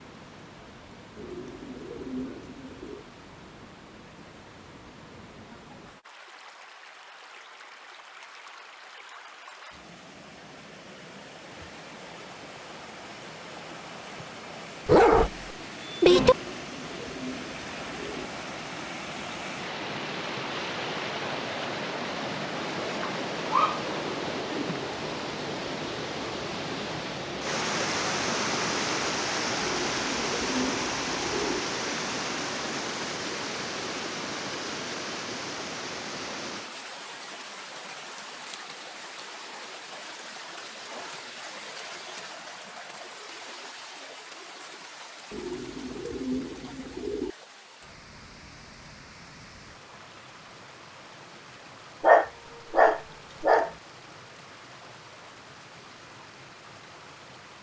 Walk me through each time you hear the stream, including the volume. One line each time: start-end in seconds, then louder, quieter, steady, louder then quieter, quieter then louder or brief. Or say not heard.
0.0-57.5 louder then quieter.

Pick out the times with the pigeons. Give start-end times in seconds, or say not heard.
1.1-3.0, 16.2-18.3, 29.6-31.6, 45.3-47.4.